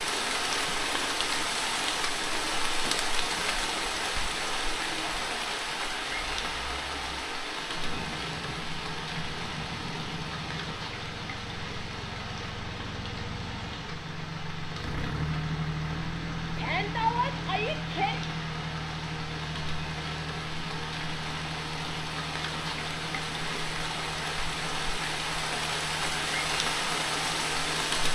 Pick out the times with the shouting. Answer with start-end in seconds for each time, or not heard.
16.6-18.2.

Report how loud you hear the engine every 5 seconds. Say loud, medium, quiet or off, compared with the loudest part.
quiet, medium, medium, loud, medium, medium.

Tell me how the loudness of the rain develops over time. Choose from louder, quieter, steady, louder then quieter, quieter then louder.
quieter then louder.